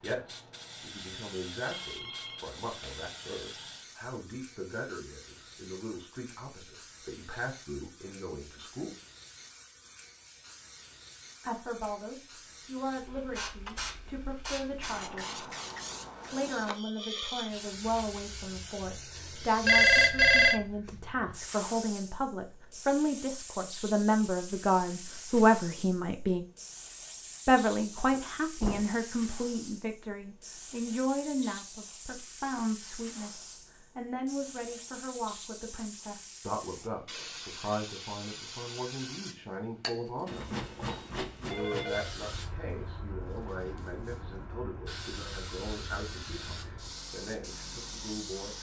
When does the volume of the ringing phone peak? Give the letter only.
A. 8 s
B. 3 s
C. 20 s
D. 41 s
C.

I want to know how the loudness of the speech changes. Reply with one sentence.
The volume of the speech goes up, then down.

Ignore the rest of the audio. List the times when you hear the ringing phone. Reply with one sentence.
You can hear the ringing phone from 1.6 to 3.0 s, from 19.6 to 20.6 s and from 40.5 to 42.1 s.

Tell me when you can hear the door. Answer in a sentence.
The door can be heard from 28.1 to 29.1 s.